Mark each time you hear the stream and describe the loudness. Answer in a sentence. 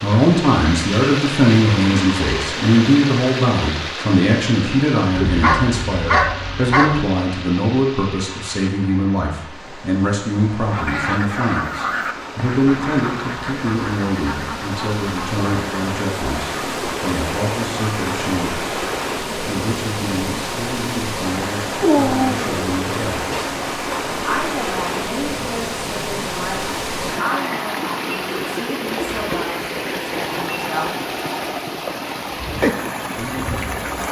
You can hear the stream from 0.0 to 34.0 s, getting quieter then louder.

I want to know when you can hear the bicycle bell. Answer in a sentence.
The bicycle bell can't be heard in this clip.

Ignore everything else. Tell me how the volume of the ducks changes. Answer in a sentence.
The volume of the ducks goes down.